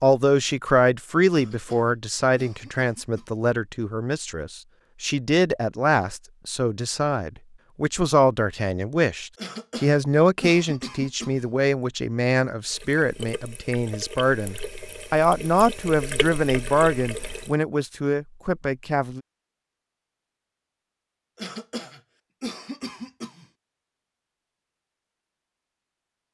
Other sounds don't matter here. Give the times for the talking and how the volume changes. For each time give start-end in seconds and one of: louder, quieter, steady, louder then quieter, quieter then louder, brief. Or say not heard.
0.0-19.2 steady.